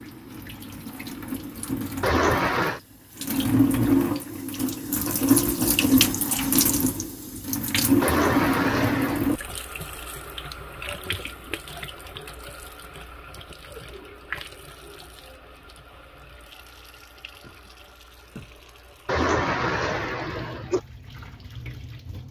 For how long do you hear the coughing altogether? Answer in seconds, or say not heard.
4 s.